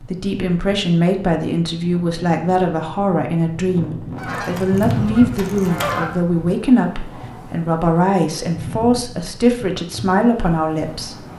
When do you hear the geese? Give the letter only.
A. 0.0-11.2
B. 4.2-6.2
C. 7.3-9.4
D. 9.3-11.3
B.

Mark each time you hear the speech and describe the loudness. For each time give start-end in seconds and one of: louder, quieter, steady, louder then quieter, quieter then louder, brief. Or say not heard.
0.0-11.2 steady.